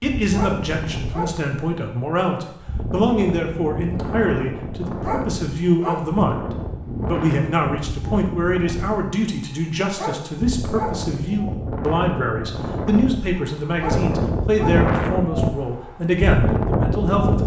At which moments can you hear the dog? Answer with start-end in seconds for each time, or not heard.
0.3-1.4, 5.0-6.2, 9.9-11.1, 13.8-14.9.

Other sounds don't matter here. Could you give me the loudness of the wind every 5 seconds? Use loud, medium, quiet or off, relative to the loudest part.
medium, medium, loud, loud.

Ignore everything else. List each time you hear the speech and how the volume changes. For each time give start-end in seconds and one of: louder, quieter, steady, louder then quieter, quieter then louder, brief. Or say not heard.
0.0-17.4 steady.